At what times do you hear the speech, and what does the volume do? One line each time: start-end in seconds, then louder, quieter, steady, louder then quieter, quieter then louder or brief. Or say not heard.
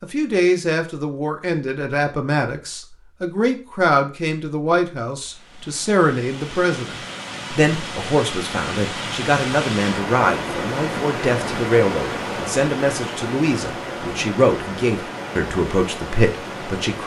0.0-17.0 steady.